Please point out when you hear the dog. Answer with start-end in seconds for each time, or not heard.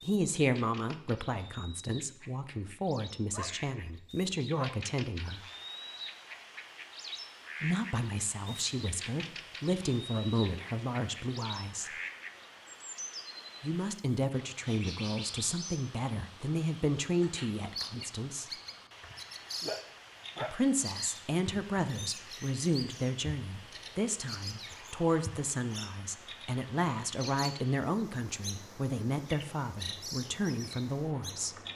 3.3-4.8, 19.6-20.7.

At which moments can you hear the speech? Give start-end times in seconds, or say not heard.
0.0-5.4, 7.6-11.9, 13.6-18.5, 20.4-31.6.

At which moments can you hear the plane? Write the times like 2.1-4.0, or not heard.
not heard.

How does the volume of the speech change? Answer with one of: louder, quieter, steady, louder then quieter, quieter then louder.
steady.